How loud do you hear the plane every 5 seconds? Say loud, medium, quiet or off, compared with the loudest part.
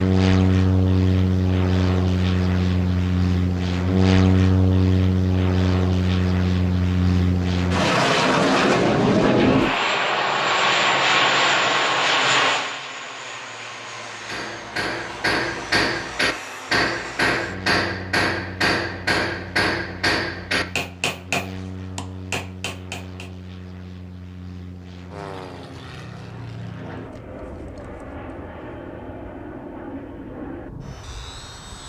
loud, loud, loud, quiet, quiet, quiet, quiet.